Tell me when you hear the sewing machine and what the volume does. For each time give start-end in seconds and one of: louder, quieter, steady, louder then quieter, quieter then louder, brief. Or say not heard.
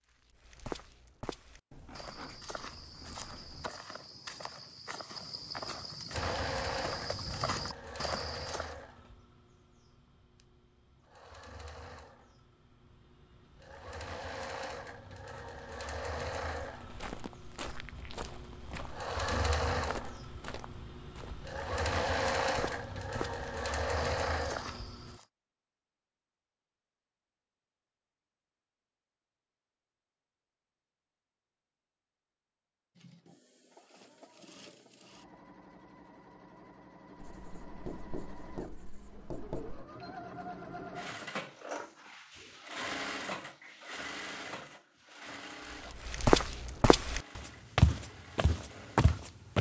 6.1-25.2 quieter then louder
33.0-49.5 louder then quieter.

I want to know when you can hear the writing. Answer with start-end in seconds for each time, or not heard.
1.7-3.7, 37.1-39.9.